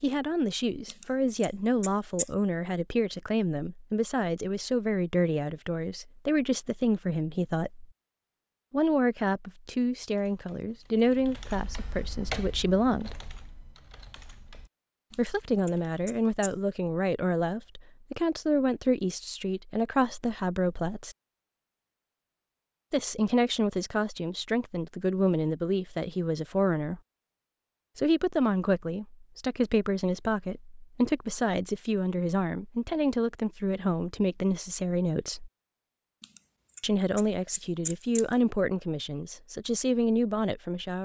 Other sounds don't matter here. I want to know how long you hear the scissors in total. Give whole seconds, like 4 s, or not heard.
5 s.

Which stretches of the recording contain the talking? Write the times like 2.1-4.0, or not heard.
0.0-7.9, 8.7-13.2, 15.2-21.1, 22.9-27.0, 27.9-35.5, 36.8-41.0.